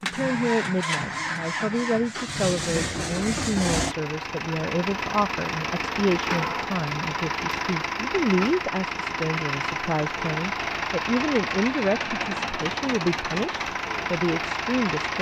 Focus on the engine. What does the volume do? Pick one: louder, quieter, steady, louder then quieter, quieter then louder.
steady.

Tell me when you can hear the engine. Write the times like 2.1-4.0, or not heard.
0.0-15.1.